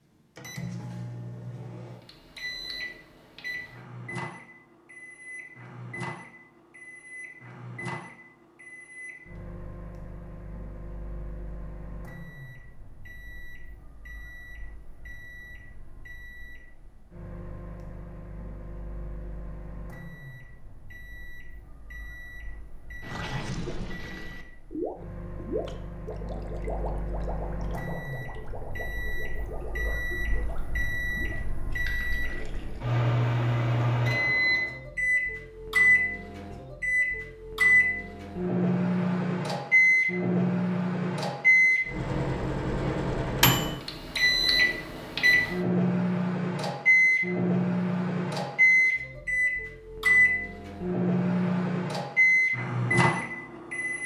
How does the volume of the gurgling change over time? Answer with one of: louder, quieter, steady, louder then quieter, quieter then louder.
quieter.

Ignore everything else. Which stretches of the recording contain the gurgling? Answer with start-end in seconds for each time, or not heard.
23.0-33.0.